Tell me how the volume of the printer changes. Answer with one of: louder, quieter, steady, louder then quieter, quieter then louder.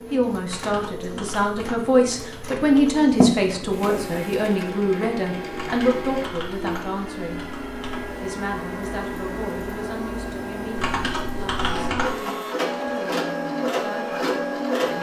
louder.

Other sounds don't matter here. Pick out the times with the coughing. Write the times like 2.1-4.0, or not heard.
3.1-4.0.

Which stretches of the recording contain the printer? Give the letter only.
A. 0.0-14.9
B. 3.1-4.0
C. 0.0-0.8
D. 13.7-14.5
A.